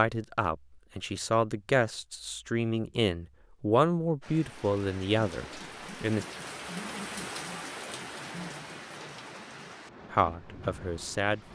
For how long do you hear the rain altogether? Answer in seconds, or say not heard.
7 s.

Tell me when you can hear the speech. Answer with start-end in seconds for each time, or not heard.
0.0-6.2, 10.1-11.5.